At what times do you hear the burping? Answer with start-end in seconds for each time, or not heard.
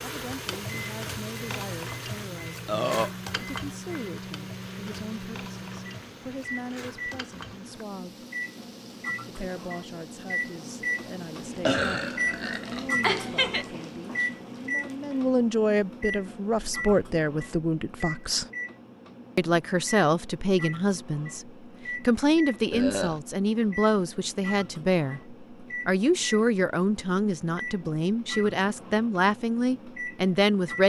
2.6-3.1, 11.7-13.7, 22.7-23.2.